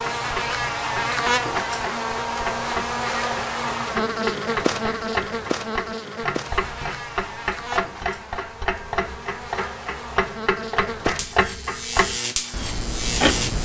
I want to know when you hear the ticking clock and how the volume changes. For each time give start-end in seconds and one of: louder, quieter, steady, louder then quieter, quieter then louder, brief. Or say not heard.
0.0-13.6 louder.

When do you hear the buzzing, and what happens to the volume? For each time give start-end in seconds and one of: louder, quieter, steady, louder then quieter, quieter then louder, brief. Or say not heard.
0.0-13.6 quieter then louder.